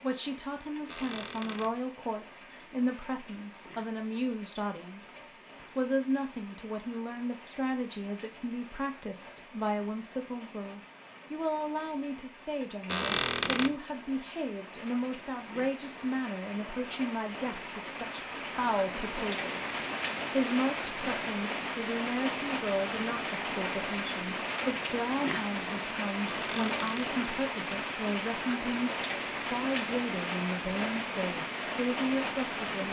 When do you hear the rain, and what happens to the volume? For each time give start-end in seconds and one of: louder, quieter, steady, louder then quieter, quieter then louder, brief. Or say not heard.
0.0-32.8 louder.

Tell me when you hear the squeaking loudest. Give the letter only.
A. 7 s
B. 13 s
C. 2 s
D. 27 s
B.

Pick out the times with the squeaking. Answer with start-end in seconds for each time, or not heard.
0.8-1.8, 12.8-13.8, 26.2-27.1.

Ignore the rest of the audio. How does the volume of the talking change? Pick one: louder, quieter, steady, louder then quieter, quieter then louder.
steady.